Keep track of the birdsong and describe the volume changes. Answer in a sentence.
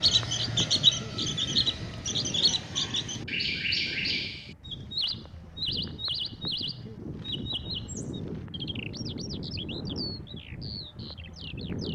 The volume of the birdsong goes down.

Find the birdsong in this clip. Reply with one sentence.
The birdsong can be heard from 0.0 to 11.9 s.